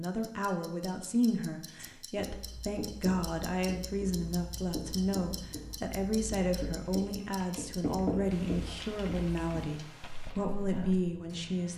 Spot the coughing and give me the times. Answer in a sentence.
You can't hear the coughing here.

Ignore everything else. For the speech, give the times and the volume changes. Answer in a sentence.
You can hear the speech from 0.0 to 11.7 s, at a steady volume.